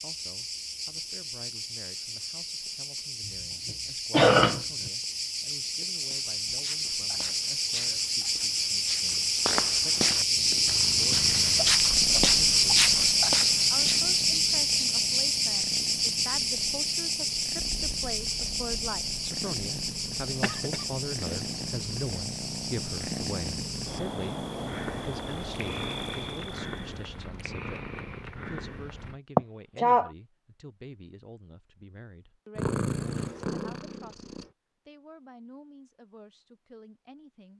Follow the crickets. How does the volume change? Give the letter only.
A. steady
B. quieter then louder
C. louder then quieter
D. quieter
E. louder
C.